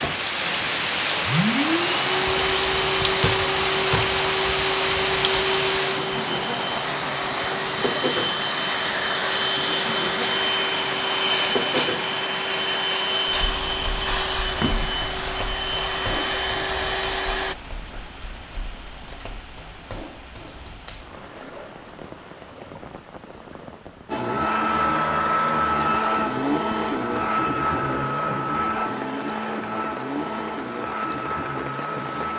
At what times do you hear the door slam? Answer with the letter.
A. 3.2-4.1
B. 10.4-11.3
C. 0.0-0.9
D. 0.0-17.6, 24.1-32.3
A.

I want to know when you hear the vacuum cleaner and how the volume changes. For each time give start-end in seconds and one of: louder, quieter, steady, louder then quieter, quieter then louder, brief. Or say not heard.
0.0-17.6 steady
24.1-32.3 quieter.